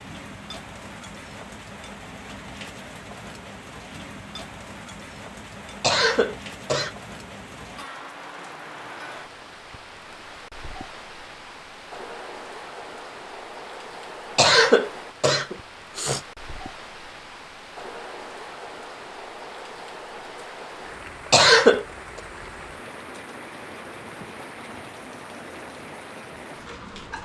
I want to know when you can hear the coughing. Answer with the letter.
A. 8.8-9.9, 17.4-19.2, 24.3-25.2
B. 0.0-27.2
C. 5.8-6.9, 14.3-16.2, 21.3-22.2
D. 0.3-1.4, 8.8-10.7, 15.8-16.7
C.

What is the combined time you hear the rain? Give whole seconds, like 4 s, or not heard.
27 s.